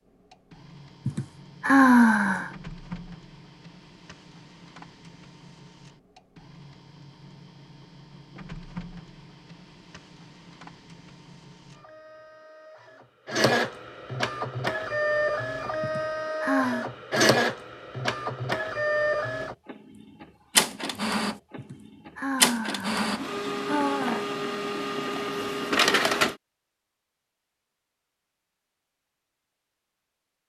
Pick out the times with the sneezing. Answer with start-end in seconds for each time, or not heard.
not heard.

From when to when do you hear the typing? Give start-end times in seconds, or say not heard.
not heard.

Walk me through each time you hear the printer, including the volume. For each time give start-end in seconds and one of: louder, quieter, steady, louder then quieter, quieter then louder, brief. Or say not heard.
0.1-26.4 louder.